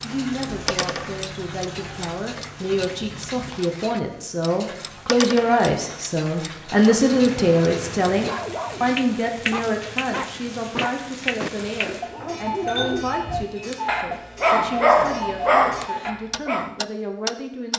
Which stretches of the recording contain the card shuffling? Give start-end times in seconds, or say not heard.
not heard.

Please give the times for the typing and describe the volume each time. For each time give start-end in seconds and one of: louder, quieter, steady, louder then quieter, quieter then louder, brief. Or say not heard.
not heard.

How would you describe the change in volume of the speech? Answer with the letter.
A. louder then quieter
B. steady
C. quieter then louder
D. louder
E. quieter
A.